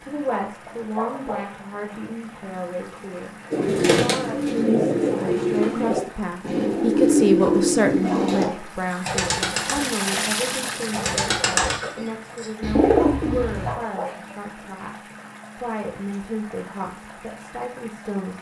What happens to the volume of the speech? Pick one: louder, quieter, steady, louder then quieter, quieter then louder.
louder then quieter.